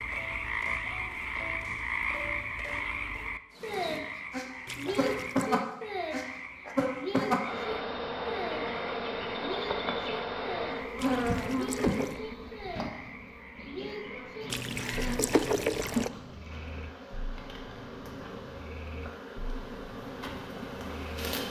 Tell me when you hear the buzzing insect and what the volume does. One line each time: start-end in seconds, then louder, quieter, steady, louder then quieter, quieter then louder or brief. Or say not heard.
3.5-21.4 quieter.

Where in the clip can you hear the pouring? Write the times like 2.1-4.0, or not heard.
4.7-5.5, 10.9-12.2, 14.5-16.1.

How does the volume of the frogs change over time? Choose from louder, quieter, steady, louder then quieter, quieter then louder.
quieter.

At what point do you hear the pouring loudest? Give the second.
16 s.